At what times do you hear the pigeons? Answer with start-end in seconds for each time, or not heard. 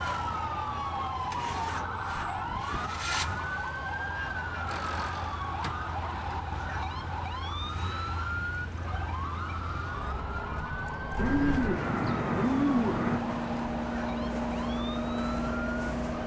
1.3-3.0, 11.2-13.2.